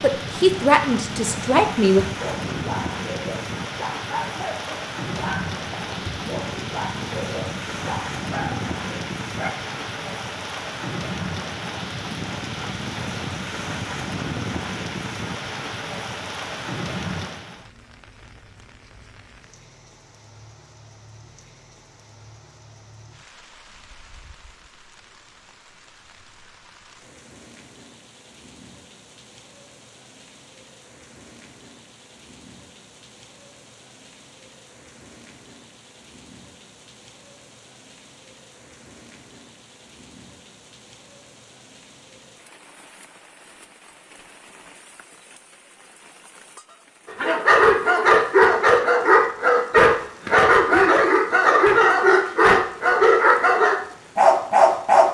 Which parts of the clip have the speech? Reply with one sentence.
The speech can be heard from 0.0 to 2.0 s.